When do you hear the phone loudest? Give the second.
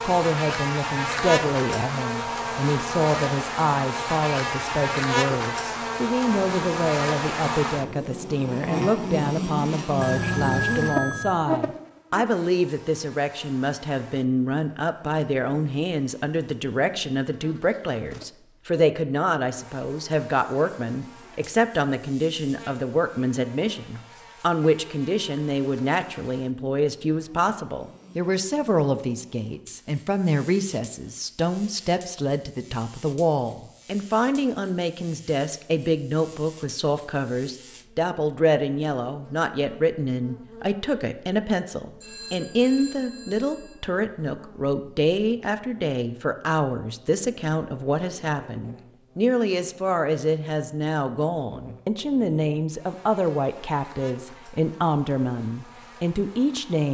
11 s.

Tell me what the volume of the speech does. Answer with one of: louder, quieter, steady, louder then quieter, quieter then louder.
steady.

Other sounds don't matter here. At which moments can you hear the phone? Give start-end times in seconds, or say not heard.
9.9-11.3, 42.0-43.8.